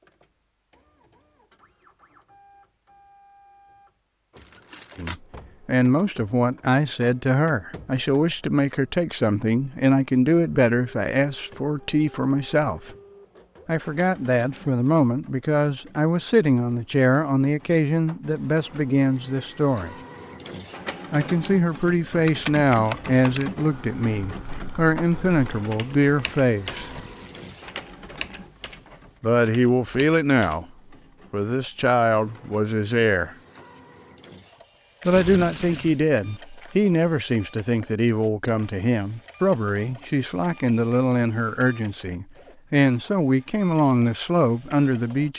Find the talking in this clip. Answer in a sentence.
You can hear the talking from 5.0 to 12.9 s, from 13.7 to 19.9 s, from 21.1 to 27.0 s, from 29.2 to 30.6 s, from 31.3 to 33.4 s and from 35.0 to 45.3 s.